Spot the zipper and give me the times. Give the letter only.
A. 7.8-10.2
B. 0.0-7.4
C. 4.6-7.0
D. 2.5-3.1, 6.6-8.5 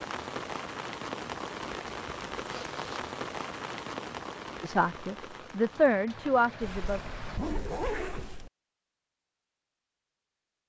D.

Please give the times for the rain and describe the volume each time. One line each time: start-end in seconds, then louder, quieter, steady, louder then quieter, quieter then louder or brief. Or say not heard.
0.0-7.4 quieter.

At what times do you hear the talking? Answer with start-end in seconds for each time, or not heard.
4.6-7.0.